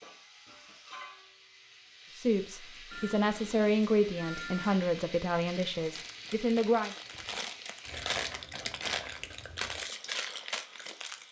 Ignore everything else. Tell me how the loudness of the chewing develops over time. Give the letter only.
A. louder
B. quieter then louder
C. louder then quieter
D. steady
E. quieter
A.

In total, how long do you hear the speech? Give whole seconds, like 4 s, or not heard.
5 s.